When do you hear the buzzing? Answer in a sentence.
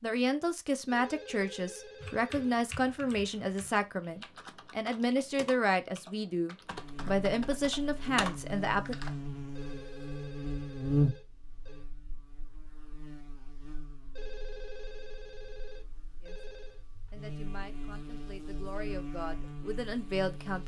You can hear the buzzing from 6.7 to 20.6 s.